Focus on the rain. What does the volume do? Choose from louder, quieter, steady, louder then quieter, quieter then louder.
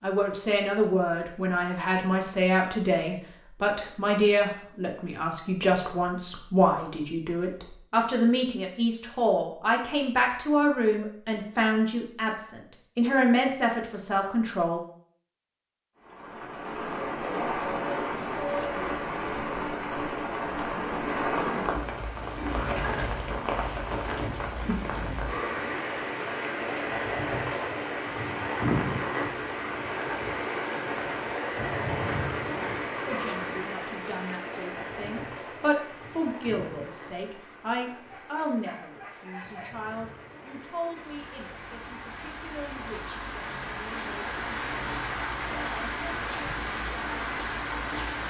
quieter then louder.